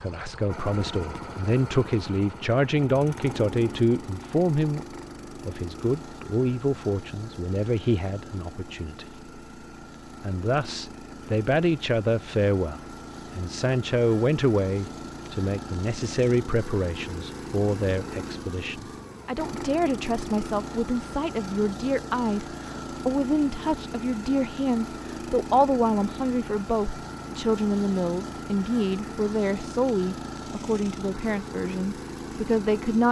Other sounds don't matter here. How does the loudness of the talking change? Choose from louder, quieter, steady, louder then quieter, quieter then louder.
steady.